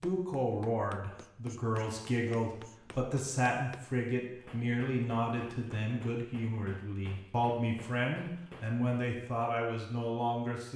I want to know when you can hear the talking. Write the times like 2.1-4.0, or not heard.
0.0-10.7.